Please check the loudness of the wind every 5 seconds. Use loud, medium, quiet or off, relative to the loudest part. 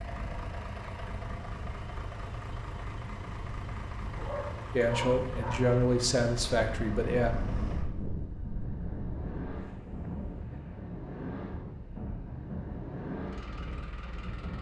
medium, loud, loud.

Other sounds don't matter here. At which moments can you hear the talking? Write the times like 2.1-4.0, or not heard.
4.8-7.3.